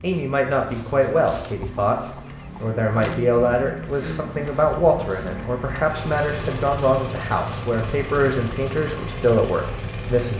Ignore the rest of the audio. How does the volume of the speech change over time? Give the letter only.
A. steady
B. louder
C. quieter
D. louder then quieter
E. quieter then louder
A.